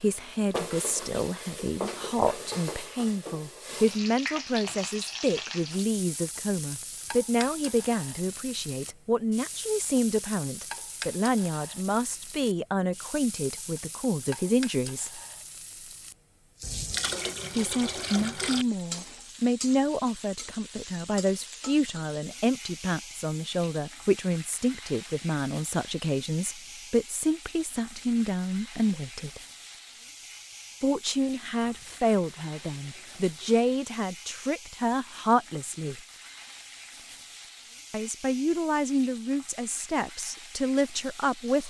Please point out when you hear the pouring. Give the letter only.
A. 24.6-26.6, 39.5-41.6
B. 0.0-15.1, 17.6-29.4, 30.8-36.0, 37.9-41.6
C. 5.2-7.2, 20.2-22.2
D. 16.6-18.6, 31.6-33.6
D.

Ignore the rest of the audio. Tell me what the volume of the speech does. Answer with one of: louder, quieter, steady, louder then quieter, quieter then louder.
steady.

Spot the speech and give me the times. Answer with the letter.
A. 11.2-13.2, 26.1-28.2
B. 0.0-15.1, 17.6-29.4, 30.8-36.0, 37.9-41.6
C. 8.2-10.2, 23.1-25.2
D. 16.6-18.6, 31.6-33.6
B.